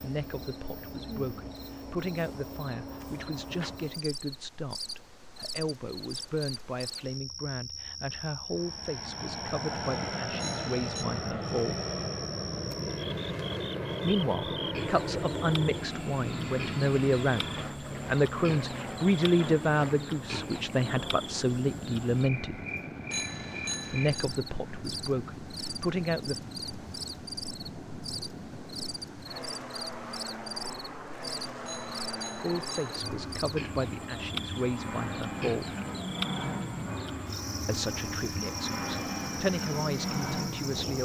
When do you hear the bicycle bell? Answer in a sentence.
The bicycle bell can be heard from 10.3 to 11.1 s, from 23.1 to 24.3 s and from 31.6 to 33.0 s.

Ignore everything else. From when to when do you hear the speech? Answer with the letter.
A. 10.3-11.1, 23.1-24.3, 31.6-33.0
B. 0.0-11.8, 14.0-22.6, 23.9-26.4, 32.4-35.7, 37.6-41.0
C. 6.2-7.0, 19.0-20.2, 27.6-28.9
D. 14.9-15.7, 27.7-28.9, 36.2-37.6
B.